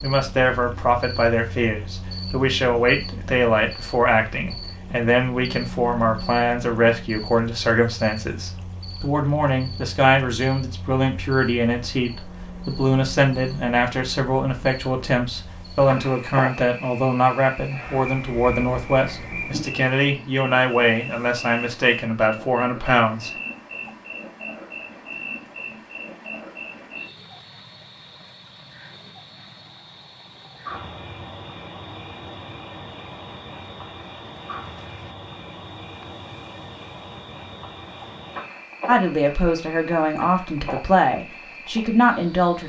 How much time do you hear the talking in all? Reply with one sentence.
The talking can be heard for 27 seconds in total.